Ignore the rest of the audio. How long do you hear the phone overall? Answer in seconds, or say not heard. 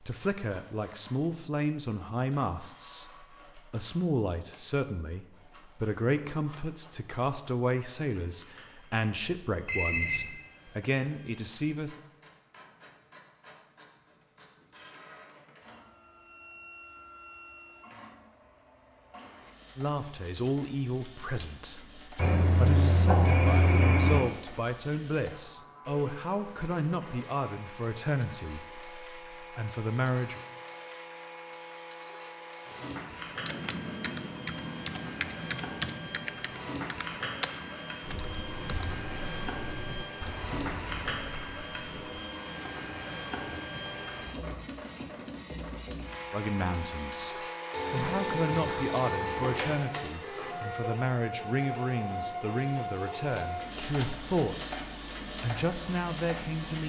5 s.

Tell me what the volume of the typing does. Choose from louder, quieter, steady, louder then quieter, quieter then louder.
quieter.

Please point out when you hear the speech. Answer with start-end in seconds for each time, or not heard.
0.0-12.0, 19.8-30.4, 46.3-54.8, 55.4-56.8.